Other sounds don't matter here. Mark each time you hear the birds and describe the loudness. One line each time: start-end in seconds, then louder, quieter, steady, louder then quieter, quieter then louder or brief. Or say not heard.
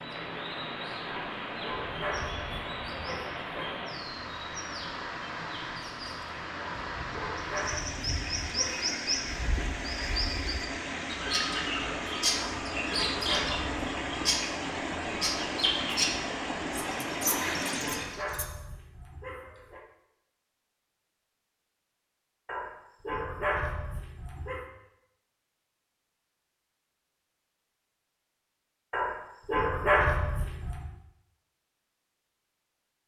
0.0-18.4 louder.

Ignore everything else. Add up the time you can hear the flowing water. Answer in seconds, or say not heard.
18 s.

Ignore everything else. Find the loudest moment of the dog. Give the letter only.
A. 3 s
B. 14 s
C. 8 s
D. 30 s
D.